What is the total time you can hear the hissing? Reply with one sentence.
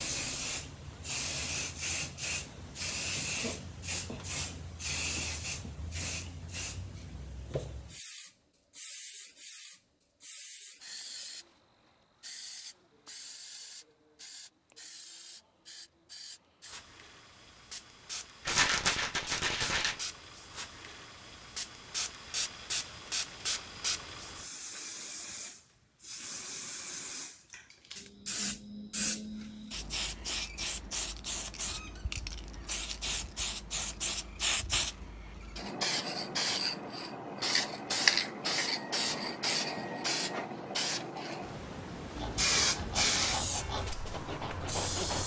The hissing can be heard for 45 seconds in total.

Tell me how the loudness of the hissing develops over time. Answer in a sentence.
The volume of the hissing goes down, then up.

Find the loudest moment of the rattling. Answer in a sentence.
The volume of the rattling peaks at 19 seconds.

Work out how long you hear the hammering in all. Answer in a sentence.
You can't hear the hammering here.